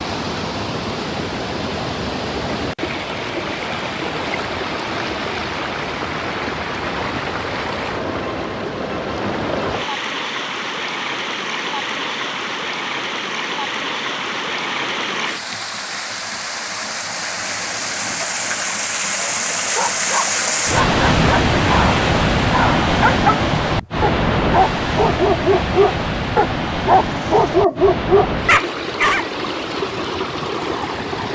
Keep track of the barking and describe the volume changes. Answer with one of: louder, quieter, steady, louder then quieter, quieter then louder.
louder.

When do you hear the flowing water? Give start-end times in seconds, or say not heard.
0.0-31.3.